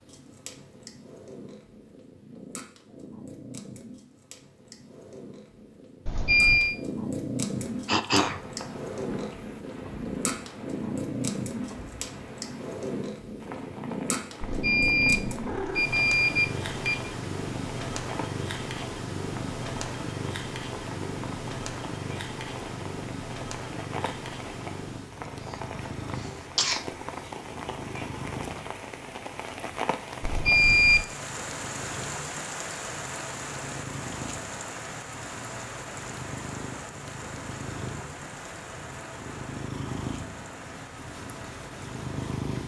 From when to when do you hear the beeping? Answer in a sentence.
The beeping can be heard from 6.0 to 6.8 s, from 14.4 to 17.1 s and from 30.2 to 31.1 s.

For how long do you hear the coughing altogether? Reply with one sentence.
The coughing can be heard for 2 seconds in total.